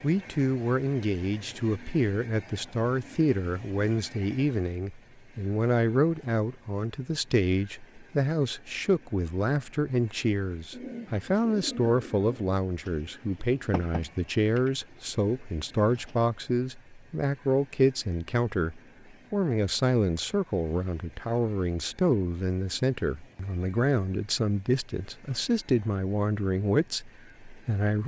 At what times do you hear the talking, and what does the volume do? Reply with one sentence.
You can hear the talking from 0.0 to 28.0 s, at a steady volume.